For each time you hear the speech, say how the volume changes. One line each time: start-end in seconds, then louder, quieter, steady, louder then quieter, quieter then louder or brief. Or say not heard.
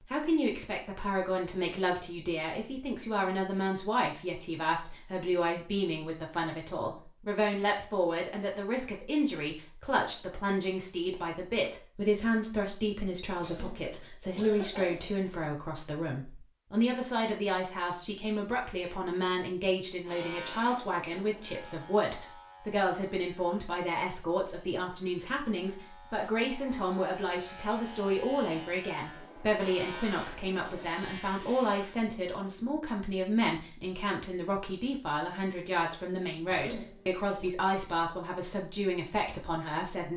0.0-40.1 steady.